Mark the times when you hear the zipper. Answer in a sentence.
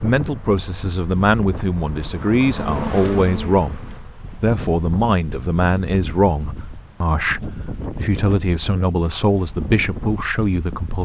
The zipper can't be heard in this clip.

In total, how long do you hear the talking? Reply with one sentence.
The talking can be heard for 11 seconds in total.